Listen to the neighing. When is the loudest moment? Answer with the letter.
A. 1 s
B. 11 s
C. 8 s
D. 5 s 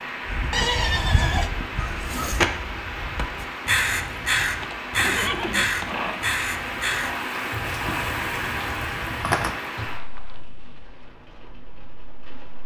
A.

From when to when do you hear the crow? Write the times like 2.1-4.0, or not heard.
0.2-9.9.